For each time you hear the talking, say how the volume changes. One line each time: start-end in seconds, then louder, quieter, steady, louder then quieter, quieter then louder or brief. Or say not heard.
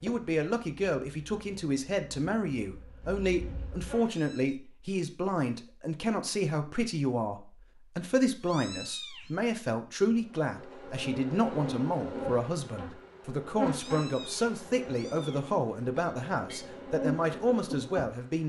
0.0-18.4 steady.